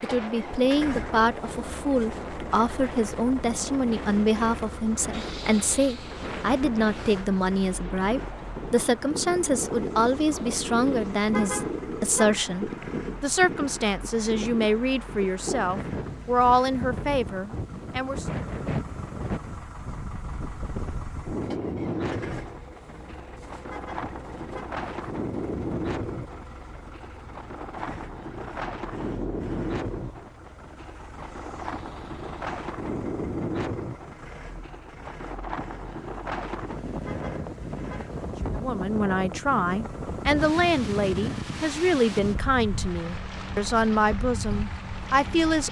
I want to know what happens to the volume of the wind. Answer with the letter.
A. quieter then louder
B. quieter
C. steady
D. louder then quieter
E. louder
C.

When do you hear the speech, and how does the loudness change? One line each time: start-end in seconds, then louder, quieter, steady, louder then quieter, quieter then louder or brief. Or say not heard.
0.0-18.2 steady
38.5-45.6 steady.